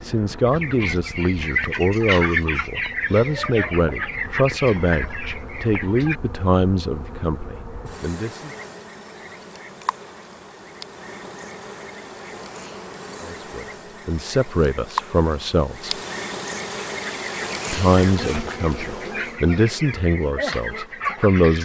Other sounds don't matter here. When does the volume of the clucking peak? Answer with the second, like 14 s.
2 s.